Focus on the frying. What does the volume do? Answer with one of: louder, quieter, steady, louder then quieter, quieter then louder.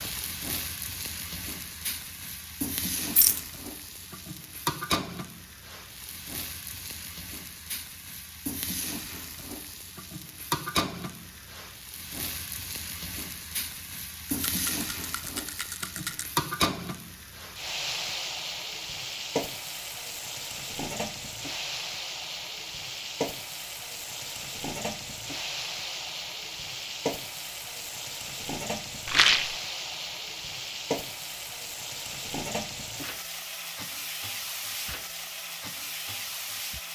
steady.